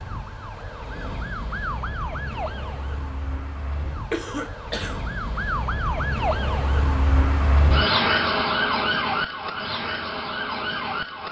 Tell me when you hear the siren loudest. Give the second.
8 s.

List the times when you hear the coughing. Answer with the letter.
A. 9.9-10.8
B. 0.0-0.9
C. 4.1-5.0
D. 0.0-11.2
C.